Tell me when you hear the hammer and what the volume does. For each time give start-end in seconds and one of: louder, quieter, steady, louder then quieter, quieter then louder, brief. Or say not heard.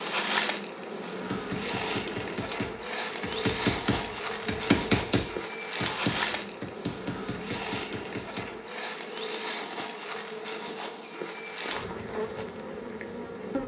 1.2-8.6 louder then quieter.